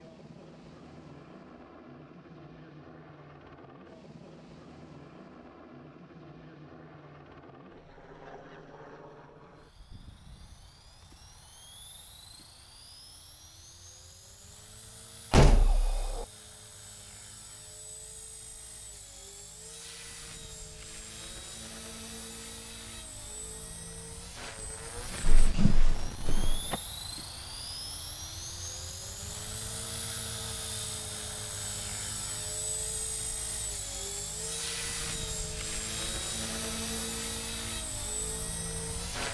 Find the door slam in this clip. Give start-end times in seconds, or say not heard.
15.3-16.2, 25.2-26.8.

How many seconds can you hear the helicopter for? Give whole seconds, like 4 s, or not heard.
39 s.